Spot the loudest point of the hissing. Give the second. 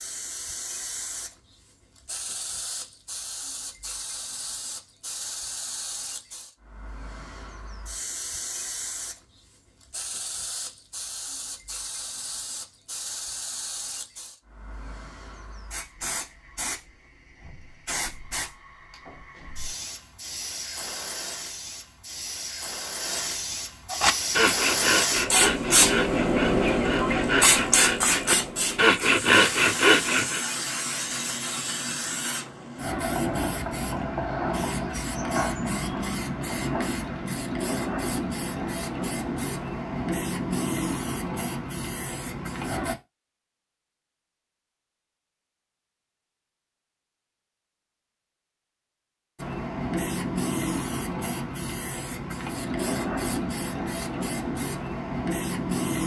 26 s.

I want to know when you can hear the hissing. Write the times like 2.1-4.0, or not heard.
0.0-43.0, 49.4-56.0.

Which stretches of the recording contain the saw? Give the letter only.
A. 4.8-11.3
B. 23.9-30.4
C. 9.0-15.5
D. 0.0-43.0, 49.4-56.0
B.